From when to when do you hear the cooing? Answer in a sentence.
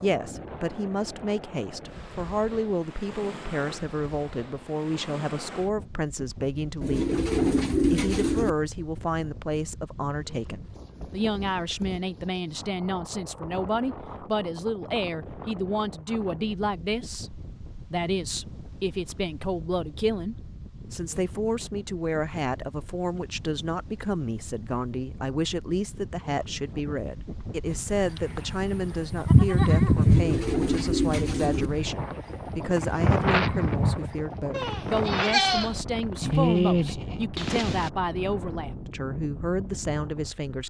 You can hear the cooing from 6.8 to 8.5 s and from 29.9 to 31.7 s.